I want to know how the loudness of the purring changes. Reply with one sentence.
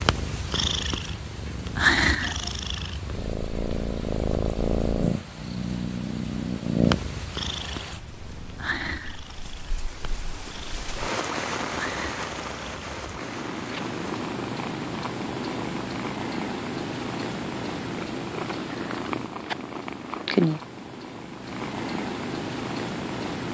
The loudness of the purring goes down, then up.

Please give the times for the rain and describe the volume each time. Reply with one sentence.
You can hear the rain from 0.1 to 14.2 s, getting louder.